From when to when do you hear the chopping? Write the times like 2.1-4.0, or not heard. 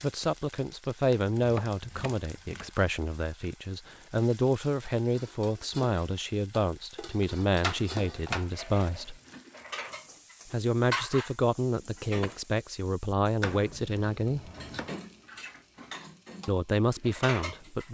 1.3-2.7, 7.6-9.3, 13.4-14.9.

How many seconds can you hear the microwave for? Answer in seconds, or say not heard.
not heard.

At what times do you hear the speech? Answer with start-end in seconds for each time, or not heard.
0.0-9.2, 10.5-14.5, 16.4-17.9.